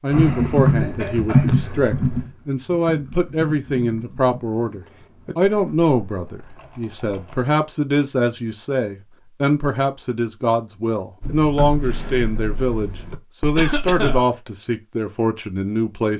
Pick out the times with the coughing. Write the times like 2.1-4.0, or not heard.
0.8-1.8, 13.6-14.2.